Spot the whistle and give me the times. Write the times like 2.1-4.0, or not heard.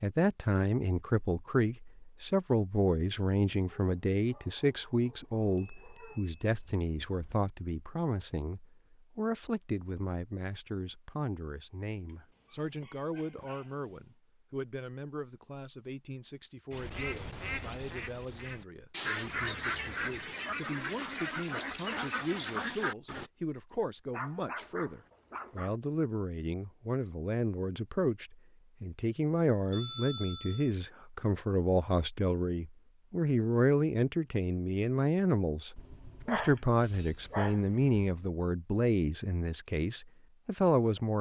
not heard.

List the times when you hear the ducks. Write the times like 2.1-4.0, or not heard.
16.7-23.3.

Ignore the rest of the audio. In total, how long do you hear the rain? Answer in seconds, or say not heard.
not heard.